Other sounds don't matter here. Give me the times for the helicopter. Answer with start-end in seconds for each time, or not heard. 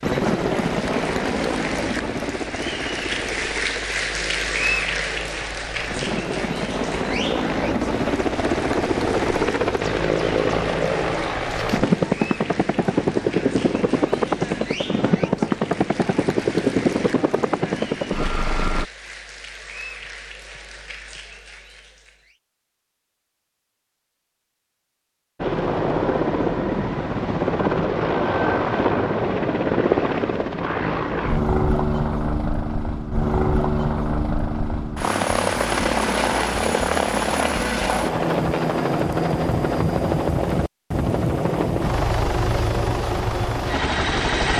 0.0-18.9, 25.4-44.5.